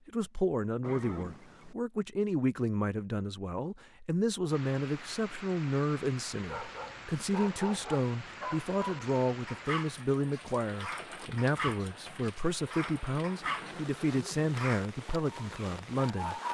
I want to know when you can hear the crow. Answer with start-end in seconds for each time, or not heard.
not heard.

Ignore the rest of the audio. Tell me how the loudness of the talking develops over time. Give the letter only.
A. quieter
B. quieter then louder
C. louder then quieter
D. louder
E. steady
E.